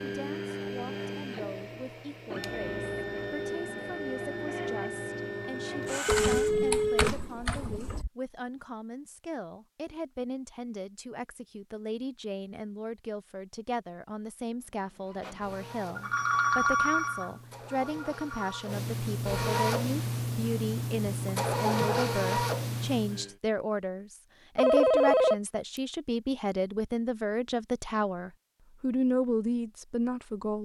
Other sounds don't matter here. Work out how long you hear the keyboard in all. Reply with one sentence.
You can hear the keyboard for 2 seconds altogether.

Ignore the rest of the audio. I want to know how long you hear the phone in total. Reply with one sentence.
The phone can be heard for 6 seconds in total.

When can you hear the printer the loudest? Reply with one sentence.
The loudest moment of the printer is at 22 seconds.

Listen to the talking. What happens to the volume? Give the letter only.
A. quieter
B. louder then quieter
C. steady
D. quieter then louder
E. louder
E.